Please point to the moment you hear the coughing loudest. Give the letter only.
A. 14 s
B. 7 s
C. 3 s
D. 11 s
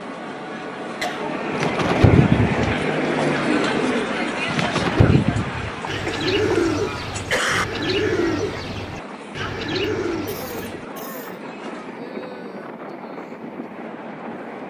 B.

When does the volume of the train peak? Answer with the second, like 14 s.
3 s.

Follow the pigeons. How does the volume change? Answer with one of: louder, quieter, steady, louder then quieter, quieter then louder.
quieter.